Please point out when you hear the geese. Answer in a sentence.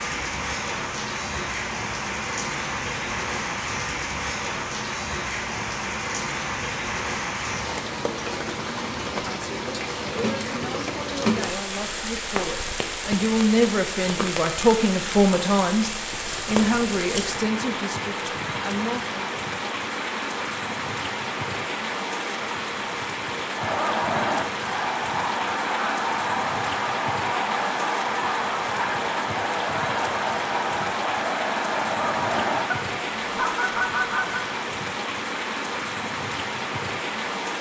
You can hear the geese from 23.6 to 34.5 s.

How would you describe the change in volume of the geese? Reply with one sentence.
The loudness of the geese stays about the same.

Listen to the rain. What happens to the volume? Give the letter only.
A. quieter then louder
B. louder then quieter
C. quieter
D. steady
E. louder
D.